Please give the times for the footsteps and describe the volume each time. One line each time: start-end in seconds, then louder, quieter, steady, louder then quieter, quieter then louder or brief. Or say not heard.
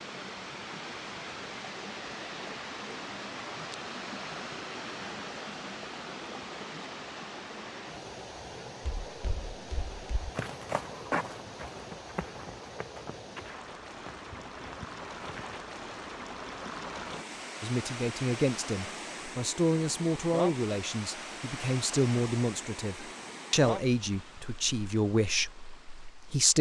9.1-15.7 louder then quieter.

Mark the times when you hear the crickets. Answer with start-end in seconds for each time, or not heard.
not heard.